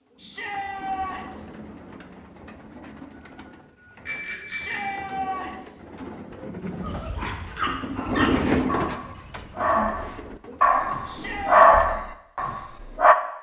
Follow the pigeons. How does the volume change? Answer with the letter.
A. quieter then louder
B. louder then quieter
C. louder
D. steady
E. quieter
B.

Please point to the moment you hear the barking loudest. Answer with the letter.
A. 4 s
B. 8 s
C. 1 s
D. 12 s
D.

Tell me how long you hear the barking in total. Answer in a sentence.
The barking can be heard for 6 seconds in total.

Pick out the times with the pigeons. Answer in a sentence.
The pigeons can be heard from 0.0 to 12.2 s.